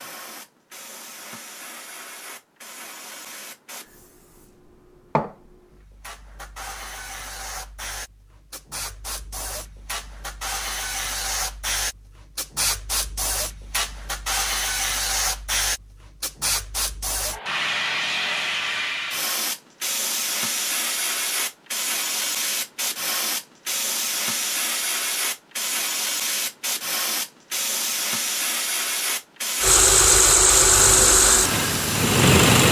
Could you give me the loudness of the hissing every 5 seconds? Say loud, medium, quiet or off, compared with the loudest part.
quiet, medium, loud, loud, loud, loud, loud.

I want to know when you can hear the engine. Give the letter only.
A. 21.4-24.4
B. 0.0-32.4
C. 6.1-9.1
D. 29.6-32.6
D.